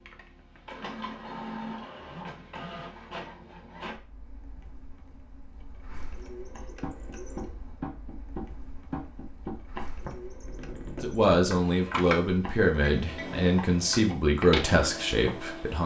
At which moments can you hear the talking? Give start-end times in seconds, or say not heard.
11.0-15.8.